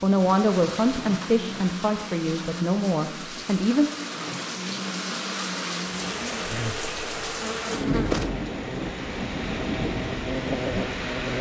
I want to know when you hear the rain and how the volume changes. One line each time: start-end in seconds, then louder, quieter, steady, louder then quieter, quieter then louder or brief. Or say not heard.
0.0-11.3 louder.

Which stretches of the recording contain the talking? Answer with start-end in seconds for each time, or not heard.
0.0-3.9.